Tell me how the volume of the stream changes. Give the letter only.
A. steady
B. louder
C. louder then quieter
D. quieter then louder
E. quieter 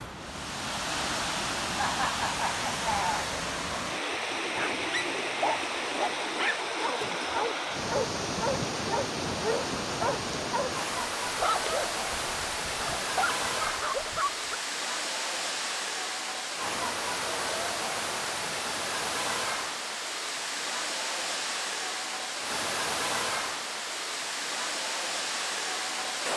A.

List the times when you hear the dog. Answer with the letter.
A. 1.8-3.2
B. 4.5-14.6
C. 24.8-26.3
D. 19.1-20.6
B.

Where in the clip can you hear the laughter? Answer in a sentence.
The laughter can be heard from 1.8 to 3.2 s.